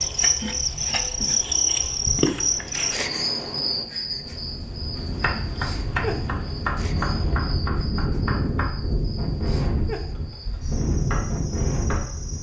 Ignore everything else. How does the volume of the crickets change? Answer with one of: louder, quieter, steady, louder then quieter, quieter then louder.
quieter.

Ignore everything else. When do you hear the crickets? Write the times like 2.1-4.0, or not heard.
0.0-12.3.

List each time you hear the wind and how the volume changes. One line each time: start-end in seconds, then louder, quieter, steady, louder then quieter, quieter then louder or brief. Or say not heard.
0.0-12.3 louder.